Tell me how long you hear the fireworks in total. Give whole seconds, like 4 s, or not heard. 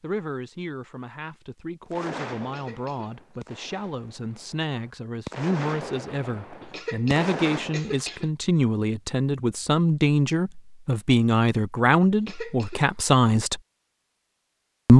6 s.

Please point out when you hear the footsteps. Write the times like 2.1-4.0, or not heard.
not heard.